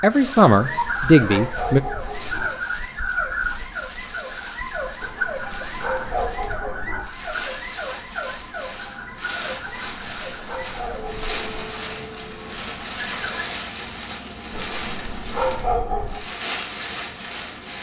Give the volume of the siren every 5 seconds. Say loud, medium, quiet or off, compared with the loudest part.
loud, loud, medium, off.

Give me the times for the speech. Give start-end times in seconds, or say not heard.
0.0-1.8.